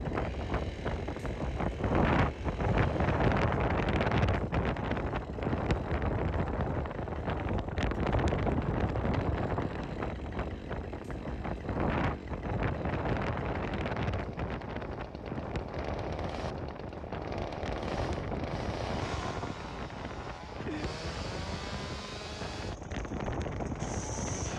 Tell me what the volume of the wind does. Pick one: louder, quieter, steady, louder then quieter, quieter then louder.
quieter.